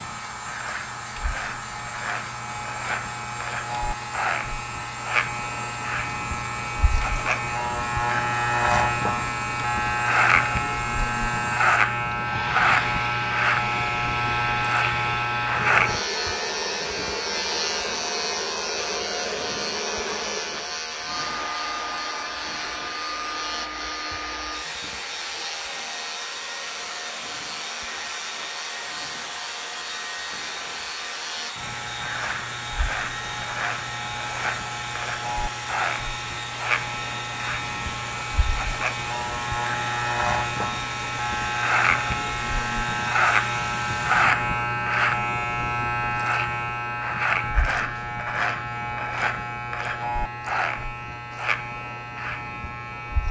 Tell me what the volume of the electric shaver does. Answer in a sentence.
The volume of the electric shaver goes down, then up.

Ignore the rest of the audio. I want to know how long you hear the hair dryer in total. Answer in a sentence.
The hair dryer can be heard for 44 seconds in total.